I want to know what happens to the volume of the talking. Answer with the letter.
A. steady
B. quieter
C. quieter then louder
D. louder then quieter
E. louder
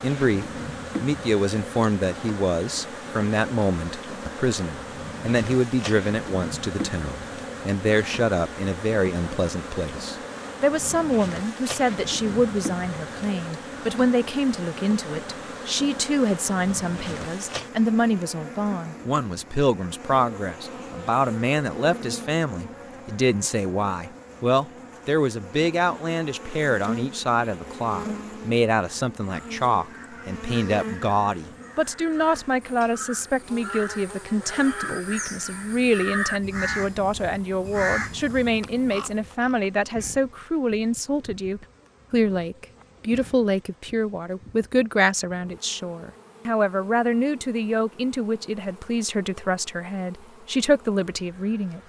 A.